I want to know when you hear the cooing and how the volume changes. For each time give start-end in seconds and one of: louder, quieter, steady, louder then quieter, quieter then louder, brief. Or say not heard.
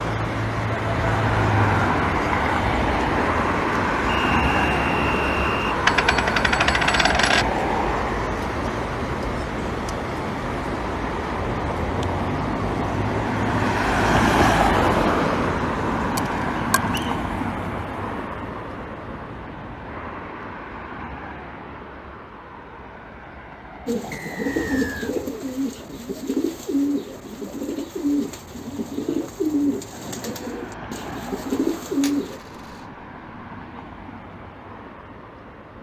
23.9-32.4 steady.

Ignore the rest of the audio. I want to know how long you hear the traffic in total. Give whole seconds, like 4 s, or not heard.
36 s.